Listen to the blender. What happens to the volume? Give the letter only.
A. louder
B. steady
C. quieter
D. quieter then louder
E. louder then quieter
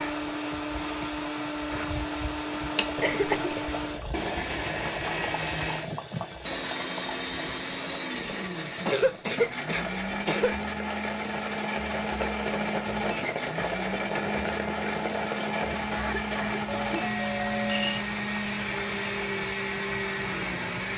B.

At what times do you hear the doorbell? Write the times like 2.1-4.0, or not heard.
16.6-18.1.